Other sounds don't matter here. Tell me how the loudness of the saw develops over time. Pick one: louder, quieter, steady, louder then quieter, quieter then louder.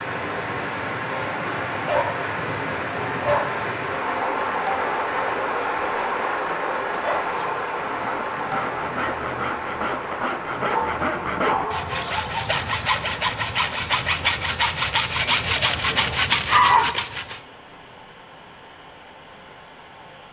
louder.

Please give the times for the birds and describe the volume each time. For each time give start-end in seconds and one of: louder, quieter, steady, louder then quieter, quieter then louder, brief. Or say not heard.
not heard.